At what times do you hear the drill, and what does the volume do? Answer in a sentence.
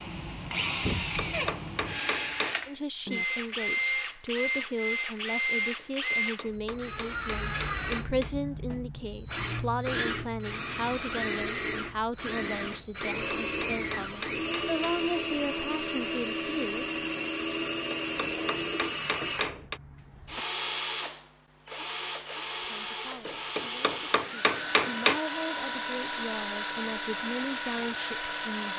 The drill can be heard from 0.0 to 28.7 s, at a steady volume.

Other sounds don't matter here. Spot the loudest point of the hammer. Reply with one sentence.
The loudest moment of the hammer is at 25 seconds.